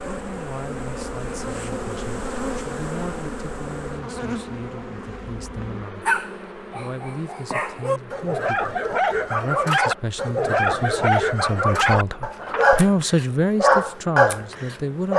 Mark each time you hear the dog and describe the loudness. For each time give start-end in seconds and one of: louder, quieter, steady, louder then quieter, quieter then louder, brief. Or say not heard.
6.0-15.1 louder.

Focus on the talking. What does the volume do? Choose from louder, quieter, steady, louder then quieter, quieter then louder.
louder.